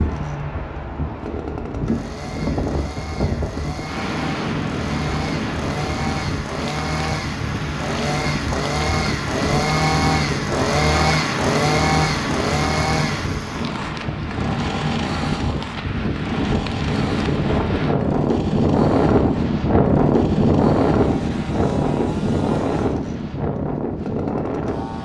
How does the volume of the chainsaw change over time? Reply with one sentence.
The loudness of the chainsaw goes up, then down.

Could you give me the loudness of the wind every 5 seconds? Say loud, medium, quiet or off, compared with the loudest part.
medium, medium, medium, loud, loud.